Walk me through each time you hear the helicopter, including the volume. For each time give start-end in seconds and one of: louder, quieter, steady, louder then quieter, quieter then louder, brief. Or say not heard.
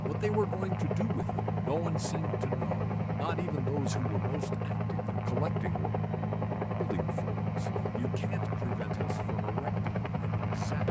0.0-10.8 steady.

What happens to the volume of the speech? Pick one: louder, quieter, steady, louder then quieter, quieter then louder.
quieter.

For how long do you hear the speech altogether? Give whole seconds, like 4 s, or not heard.
10 s.